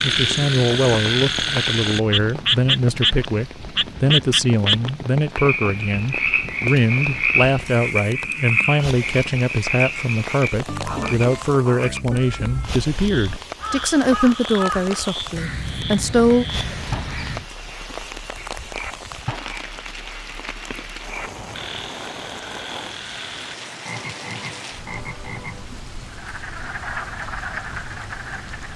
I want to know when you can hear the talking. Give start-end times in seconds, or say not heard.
0.0-16.4.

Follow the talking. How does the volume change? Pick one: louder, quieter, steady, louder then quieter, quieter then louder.
steady.